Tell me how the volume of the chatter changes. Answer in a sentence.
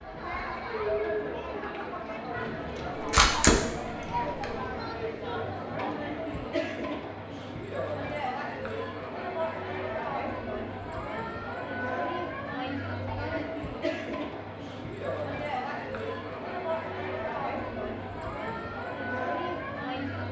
The volume of the chatter stays about the same.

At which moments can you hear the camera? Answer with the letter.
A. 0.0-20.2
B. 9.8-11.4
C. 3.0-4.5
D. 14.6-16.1
C.